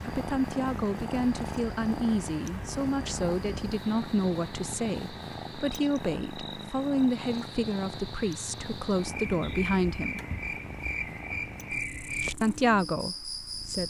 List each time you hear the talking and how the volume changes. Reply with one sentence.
You can hear the talking from 0.1 to 10.2 s, at a steady volume; and briefly from 12.4 to 13.8 s.